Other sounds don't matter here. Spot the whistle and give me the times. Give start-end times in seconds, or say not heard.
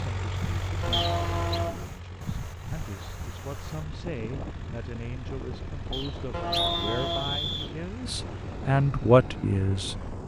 0.9-1.6, 5.9-7.8.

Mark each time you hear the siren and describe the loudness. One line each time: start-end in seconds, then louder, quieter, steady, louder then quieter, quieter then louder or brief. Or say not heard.
not heard.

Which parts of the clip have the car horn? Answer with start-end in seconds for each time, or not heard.
0.8-1.9, 6.3-7.4.